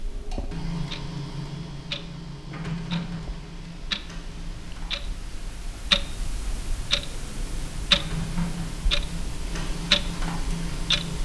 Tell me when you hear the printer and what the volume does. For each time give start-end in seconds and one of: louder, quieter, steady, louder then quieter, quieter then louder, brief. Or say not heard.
0.0-11.2 quieter then louder.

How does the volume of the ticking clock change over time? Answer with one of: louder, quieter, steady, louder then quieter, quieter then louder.
louder.